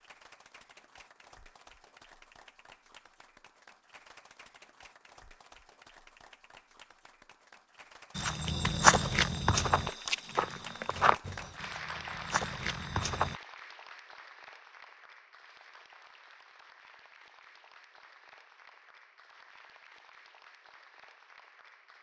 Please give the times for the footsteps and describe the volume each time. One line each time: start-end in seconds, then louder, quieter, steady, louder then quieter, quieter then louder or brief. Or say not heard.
8.2-13.3 quieter then louder.